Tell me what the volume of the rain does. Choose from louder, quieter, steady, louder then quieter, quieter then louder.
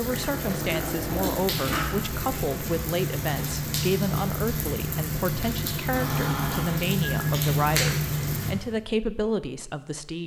louder.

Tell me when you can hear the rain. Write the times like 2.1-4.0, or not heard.
0.0-8.6.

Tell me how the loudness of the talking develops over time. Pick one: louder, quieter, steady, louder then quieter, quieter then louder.
steady.